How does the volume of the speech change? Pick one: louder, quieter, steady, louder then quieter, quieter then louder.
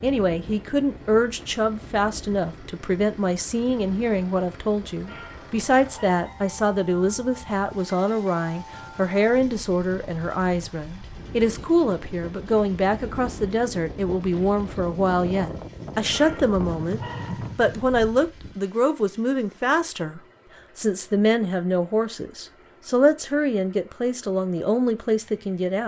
steady.